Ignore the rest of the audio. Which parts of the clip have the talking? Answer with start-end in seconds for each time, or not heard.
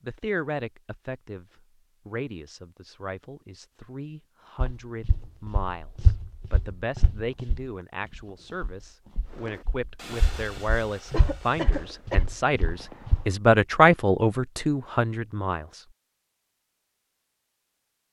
0.0-1.4, 2.0-15.8.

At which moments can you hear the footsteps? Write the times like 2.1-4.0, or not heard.
4.6-13.3.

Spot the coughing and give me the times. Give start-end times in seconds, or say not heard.
11.1-12.2.